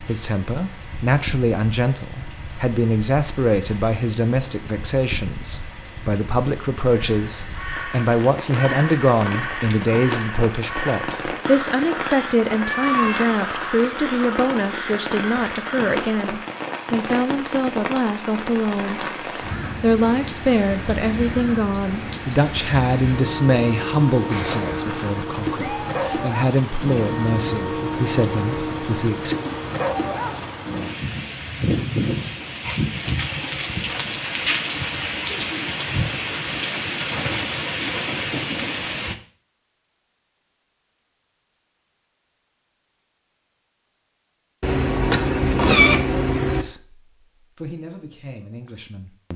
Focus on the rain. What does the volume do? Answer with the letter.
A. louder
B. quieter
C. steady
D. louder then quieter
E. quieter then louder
A.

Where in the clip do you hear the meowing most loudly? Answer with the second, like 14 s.
46 s.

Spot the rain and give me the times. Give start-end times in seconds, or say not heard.
0.0-39.1.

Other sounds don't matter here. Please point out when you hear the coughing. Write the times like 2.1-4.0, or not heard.
not heard.